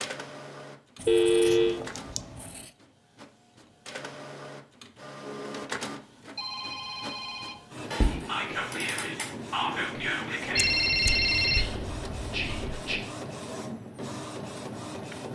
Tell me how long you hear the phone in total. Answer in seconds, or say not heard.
4 s.